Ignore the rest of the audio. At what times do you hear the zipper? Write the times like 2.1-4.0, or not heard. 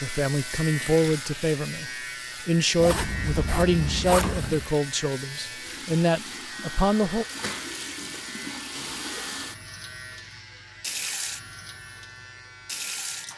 2.8-4.7.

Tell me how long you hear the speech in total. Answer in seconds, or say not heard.
7 s.